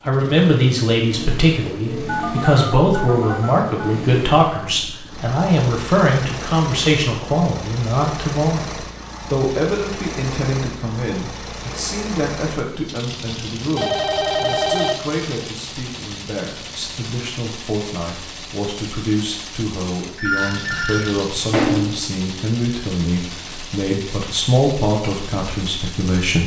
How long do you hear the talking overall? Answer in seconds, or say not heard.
26 s.